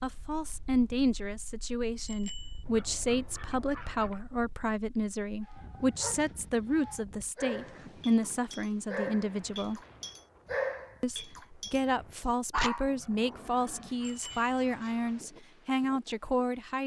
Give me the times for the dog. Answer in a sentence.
The dog can be heard from 5.4 to 11.8 s and from 12.5 to 14.9 s.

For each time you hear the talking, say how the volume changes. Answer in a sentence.
You can hear the talking from 0.0 to 9.8 s, at a steady volume; and from 11.0 to 16.8 s, at a steady volume.